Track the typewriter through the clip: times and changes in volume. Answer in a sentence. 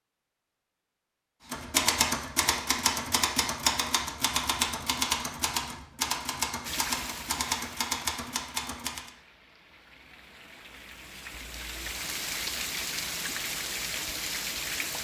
The typewriter can be heard from 1.5 to 9.1 s, at a steady volume.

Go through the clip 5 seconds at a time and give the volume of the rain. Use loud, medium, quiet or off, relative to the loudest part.
off, medium, loud.